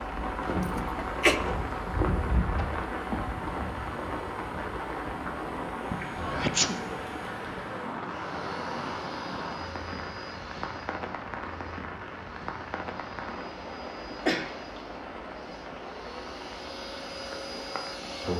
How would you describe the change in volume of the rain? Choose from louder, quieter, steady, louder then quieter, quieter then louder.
quieter.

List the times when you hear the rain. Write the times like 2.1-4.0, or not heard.
0.0-18.3.